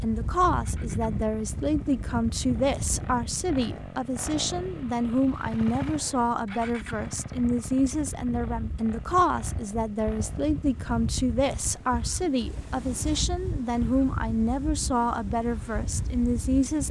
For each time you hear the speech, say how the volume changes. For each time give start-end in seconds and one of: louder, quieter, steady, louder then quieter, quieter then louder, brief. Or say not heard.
0.0-16.8 steady.